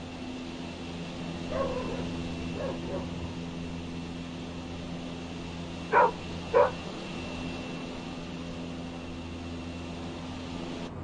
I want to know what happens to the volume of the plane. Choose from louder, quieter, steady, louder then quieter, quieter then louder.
steady.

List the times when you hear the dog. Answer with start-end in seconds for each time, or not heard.
1.4-3.4, 5.9-6.8.